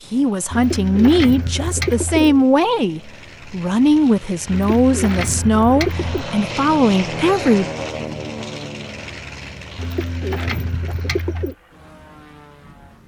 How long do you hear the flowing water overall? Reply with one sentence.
You can't hear the flowing water here.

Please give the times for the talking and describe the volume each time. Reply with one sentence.
You can hear the talking from 0.1 to 7.7 s, at a steady volume.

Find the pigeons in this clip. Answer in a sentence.
You can hear the pigeons from 0.5 to 2.5 s, from 4.5 to 6.2 s and from 9.8 to 11.6 s.